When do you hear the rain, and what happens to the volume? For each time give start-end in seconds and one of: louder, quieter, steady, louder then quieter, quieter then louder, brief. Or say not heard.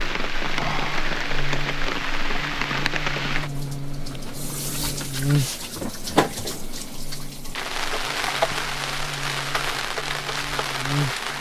0.0-11.3 steady.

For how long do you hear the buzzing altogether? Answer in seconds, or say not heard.
11 s.